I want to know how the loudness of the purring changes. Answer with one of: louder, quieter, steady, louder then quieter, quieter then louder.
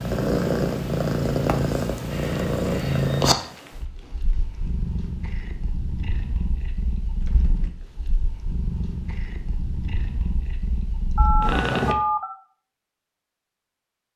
quieter.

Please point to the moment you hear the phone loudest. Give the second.
12 s.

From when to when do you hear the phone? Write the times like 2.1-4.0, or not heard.
2.1-3.2, 11.2-12.3.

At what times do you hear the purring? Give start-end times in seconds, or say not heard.
0.0-11.9.